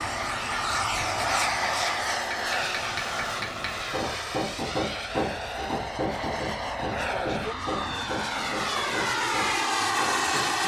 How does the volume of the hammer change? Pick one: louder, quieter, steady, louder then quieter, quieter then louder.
louder then quieter.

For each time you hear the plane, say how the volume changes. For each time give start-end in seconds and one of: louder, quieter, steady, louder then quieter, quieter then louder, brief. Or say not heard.
0.0-10.6 quieter then louder.